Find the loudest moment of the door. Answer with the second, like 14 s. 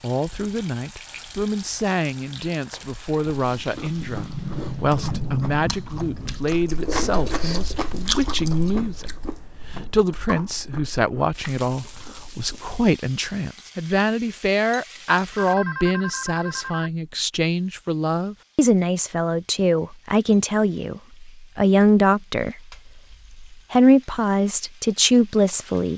5 s.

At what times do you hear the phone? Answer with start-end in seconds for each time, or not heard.
15.3-16.9.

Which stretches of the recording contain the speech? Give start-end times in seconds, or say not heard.
0.0-22.6, 23.5-25.9.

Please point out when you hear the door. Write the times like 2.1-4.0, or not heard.
4.0-6.5.